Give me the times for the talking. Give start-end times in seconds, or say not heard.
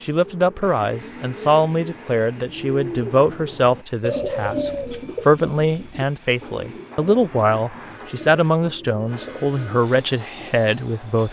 0.0-11.2.